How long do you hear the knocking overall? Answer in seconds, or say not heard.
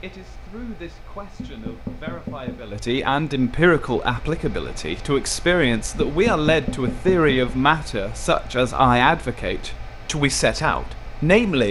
3 s.